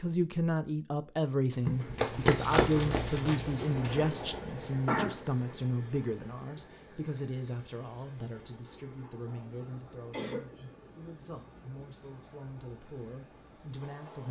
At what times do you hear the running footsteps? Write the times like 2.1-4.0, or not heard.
1.9-4.1.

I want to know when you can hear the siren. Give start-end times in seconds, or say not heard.
not heard.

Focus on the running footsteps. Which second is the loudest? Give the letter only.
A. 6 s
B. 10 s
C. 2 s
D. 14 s
C.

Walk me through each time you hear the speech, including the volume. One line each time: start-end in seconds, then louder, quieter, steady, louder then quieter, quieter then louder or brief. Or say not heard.
0.0-14.2 quieter.